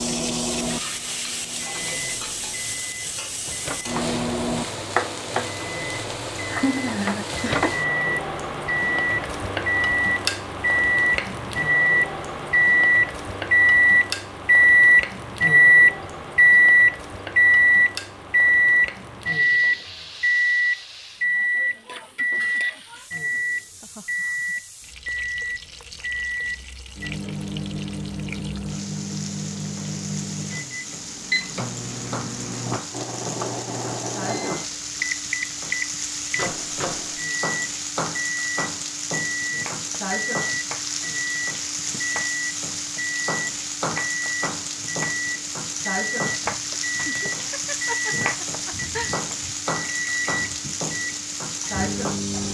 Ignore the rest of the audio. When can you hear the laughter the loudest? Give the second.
7 s.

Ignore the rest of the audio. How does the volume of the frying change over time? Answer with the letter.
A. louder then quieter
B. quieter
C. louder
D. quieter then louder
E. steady
D.